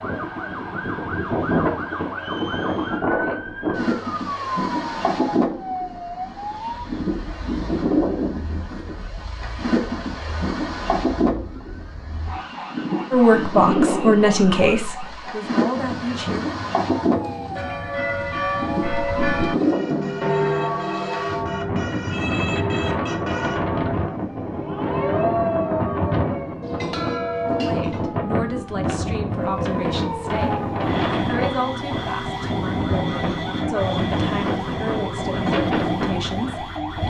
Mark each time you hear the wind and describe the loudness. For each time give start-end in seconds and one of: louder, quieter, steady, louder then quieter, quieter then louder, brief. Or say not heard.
0.0-37.0 steady.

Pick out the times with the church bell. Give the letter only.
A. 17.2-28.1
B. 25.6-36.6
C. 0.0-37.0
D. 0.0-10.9
A.